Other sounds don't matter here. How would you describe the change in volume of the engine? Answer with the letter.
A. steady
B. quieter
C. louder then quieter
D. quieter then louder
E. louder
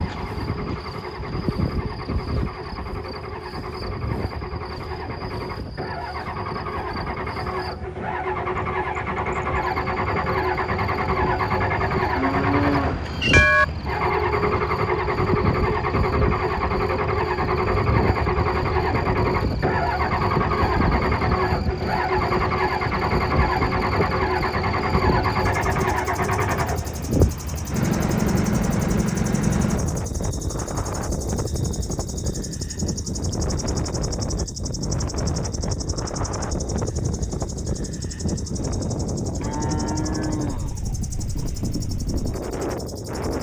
E.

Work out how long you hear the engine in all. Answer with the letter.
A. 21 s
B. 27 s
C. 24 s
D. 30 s
D.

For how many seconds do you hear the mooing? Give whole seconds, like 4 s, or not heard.
3 s.